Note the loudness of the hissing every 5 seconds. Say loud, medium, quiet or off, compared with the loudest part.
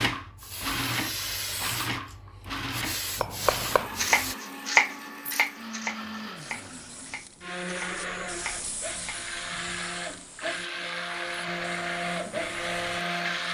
loud, medium, quiet.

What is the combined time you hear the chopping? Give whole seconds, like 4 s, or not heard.
7 s.